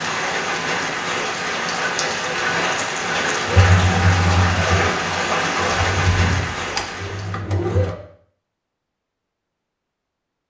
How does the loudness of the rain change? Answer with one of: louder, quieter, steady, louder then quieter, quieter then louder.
steady.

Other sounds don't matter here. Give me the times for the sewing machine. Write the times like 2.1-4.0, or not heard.
3.5-8.0.